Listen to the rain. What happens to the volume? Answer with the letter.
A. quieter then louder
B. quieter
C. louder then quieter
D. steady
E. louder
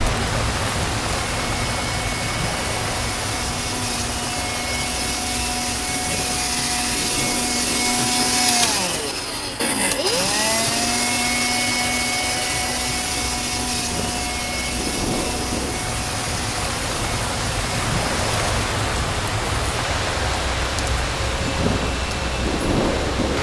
A.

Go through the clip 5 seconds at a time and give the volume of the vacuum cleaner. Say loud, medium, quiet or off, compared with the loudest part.
medium, loud, loud, medium, medium.